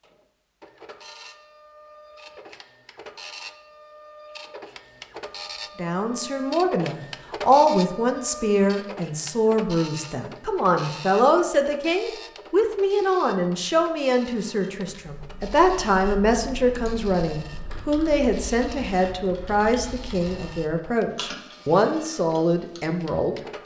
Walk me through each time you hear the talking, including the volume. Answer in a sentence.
You can hear the talking from 5.8 to 23.4 s, at a steady volume.